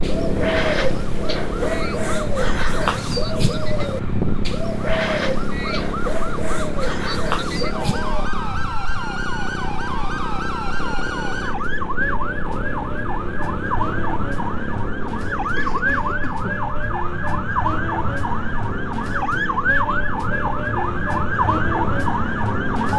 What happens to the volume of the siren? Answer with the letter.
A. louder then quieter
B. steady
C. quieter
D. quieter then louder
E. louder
E.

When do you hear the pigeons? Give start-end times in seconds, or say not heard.
0.0-8.3.